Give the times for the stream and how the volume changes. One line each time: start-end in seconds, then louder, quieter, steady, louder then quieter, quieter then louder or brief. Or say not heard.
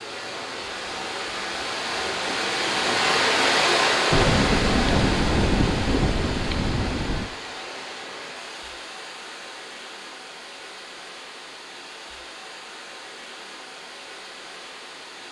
0.0-15.2 quieter.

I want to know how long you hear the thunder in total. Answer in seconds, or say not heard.
3 s.